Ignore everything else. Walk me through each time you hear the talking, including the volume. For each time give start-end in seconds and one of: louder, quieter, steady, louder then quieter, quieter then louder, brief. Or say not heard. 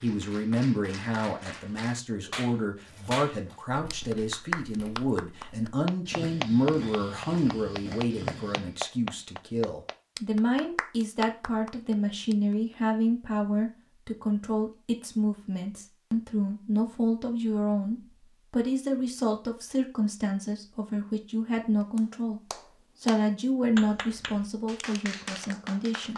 0.0-26.1 steady.